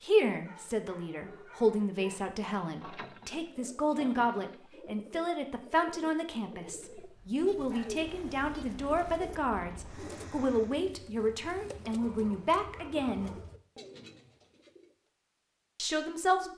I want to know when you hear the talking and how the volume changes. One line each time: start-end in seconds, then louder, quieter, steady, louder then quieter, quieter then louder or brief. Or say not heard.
0.0-13.3 steady
15.8-16.5 brief.